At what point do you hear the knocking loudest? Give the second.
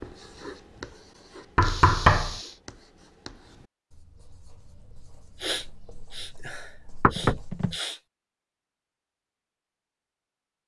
2 s.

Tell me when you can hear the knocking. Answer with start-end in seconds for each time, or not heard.
1.6-2.4, 7.0-7.8.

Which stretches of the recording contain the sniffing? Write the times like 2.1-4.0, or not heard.
1.6-2.6, 5.4-8.0.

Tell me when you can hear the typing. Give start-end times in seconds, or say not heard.
not heard.